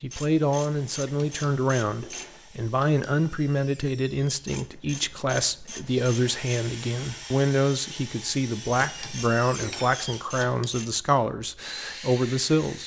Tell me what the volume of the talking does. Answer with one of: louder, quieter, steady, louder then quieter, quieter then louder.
steady.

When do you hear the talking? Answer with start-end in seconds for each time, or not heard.
0.0-12.8.